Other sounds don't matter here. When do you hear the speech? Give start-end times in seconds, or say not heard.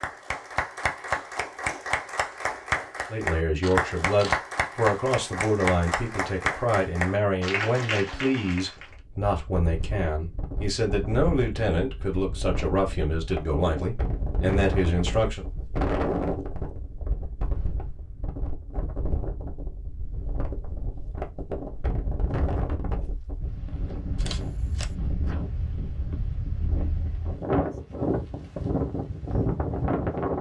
3.1-15.4.